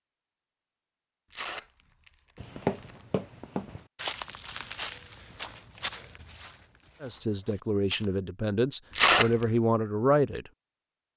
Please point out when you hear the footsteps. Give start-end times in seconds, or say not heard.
2.4-8.1.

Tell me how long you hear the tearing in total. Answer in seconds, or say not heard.
2 s.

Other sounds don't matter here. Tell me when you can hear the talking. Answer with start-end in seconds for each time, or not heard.
7.0-10.5.